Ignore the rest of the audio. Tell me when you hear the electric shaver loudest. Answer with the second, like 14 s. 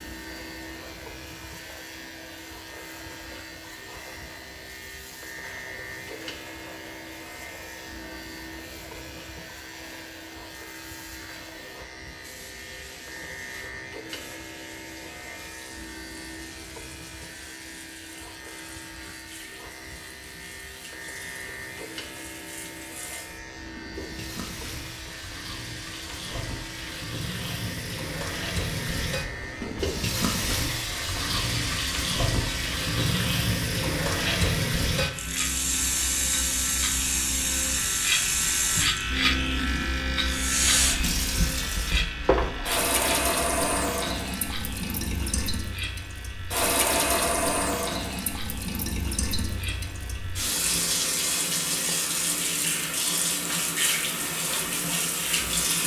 39 s.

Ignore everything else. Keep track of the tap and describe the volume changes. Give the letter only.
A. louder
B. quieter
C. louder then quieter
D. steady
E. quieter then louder
A.